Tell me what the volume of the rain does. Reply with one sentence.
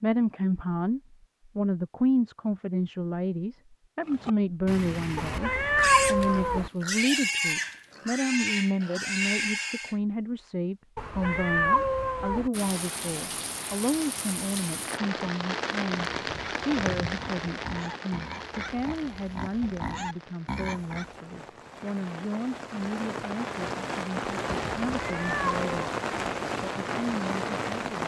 The loudness of the rain goes down, then up.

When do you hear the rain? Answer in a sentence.
The rain can be heard from 12.5 to 28.0 s.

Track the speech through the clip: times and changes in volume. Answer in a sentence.
You can hear the speech from 0.0 to 25.9 s, getting quieter; and briefly from 26.6 to 28.0 s.